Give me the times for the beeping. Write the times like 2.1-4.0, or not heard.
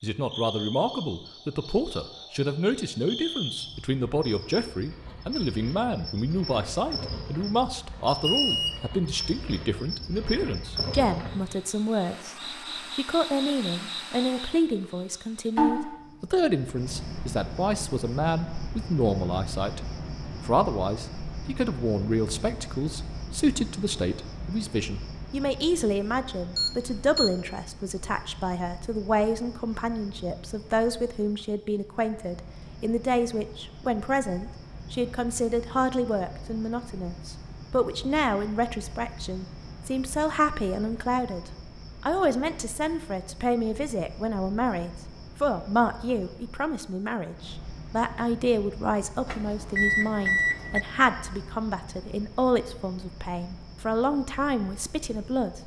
8.2-8.8, 26.6-27.3, 49.2-50.8.